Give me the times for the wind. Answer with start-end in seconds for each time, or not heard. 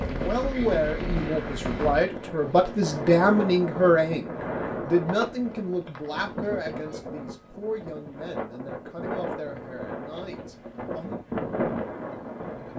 0.0-12.7.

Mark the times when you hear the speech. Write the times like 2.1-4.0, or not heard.
0.0-11.2.